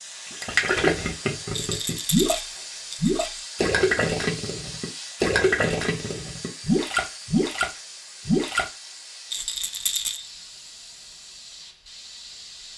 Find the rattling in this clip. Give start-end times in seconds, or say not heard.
1.5-3.2, 9.3-10.3.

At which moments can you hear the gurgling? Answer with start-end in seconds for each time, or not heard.
0.3-2.4, 3.0-8.7.